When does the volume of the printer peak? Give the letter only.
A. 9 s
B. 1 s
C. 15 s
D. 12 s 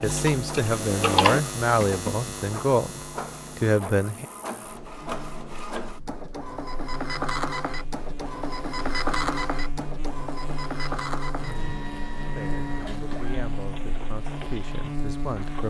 A.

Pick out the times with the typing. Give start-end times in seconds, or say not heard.
0.0-2.4.